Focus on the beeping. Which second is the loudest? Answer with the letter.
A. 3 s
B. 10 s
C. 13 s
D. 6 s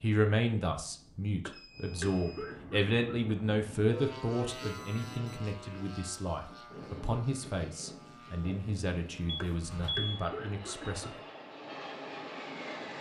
B.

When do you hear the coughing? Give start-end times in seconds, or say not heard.
1.4-3.4, 9.4-11.1.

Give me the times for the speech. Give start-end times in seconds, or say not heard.
0.0-11.1.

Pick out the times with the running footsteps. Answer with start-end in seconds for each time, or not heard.
not heard.